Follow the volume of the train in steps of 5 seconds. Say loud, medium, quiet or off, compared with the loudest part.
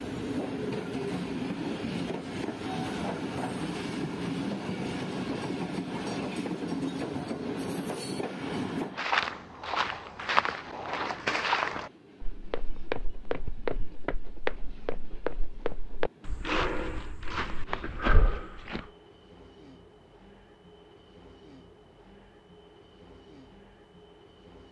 loud, loud, quiet, quiet, quiet.